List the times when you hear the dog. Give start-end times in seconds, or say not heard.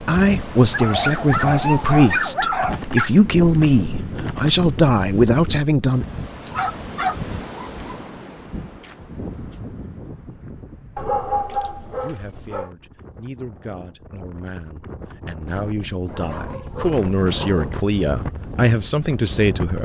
0.7-3.1, 6.5-7.9, 10.9-12.7, 16.1-17.8.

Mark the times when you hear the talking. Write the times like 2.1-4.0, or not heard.
0.1-6.0, 11.6-19.8.